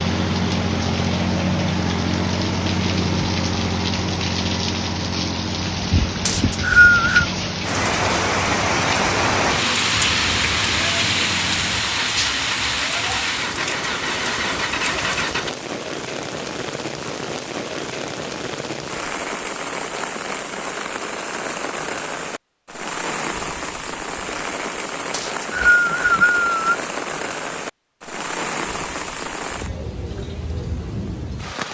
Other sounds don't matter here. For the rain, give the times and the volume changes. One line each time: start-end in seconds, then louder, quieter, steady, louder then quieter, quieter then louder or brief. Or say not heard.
0.0-31.7 louder then quieter.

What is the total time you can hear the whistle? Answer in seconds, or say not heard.
3 s.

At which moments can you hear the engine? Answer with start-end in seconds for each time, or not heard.
0.0-15.5.